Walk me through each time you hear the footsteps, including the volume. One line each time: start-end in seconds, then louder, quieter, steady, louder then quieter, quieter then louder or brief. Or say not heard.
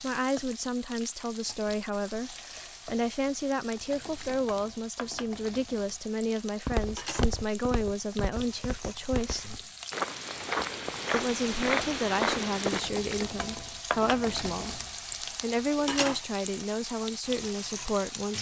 6.7-12.8 louder.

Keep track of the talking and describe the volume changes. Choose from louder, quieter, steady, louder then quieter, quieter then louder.
steady.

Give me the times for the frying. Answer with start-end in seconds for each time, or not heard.
0.0-18.3.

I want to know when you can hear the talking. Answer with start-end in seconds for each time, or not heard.
0.0-9.6, 11.1-18.3.